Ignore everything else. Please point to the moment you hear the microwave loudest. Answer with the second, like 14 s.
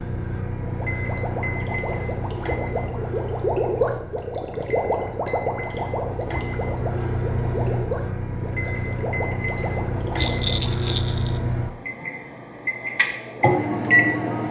14 s.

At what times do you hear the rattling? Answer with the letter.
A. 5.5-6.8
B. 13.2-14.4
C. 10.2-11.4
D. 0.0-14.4
C.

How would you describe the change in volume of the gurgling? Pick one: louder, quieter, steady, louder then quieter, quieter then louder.
louder then quieter.